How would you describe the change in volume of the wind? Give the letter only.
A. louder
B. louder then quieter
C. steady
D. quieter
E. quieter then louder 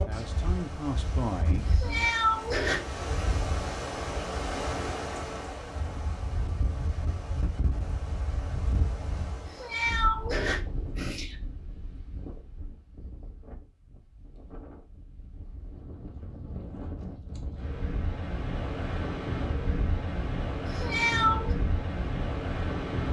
E.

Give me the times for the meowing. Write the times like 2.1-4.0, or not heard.
1.6-3.2, 9.4-11.3, 20.6-21.6.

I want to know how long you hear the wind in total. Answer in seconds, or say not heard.
23 s.